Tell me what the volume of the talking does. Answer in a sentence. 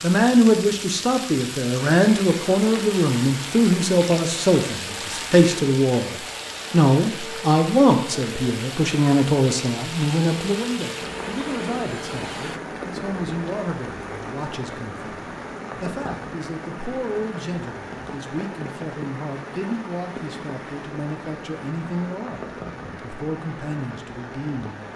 The volume of the talking goes down.